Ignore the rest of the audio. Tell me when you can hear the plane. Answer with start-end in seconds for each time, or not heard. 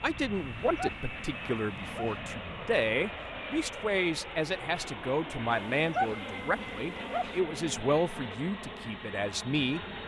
0.0-10.0.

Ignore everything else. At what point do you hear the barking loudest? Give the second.
6 s.